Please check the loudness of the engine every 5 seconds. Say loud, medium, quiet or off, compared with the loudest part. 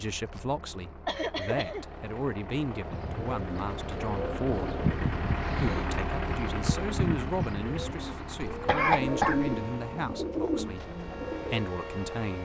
loud, loud, medium.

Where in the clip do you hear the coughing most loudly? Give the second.
9 s.